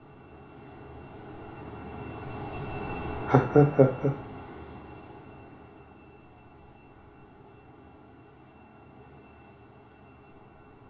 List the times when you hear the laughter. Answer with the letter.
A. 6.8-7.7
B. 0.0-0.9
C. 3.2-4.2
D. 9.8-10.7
C.